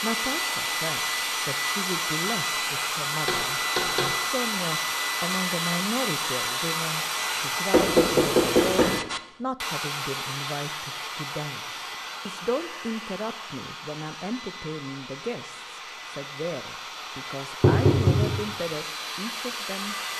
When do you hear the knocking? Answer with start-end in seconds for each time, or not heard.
3.2-4.1, 7.7-9.0, 17.6-18.3.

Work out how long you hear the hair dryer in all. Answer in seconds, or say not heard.
20 s.